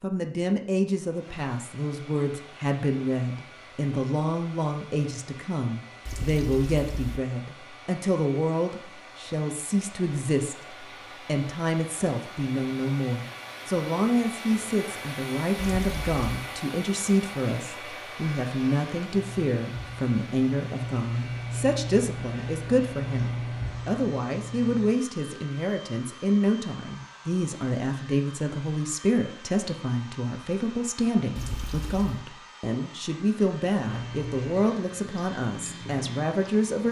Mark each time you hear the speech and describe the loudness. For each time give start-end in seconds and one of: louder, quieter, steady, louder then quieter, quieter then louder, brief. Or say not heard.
0.0-36.8 steady.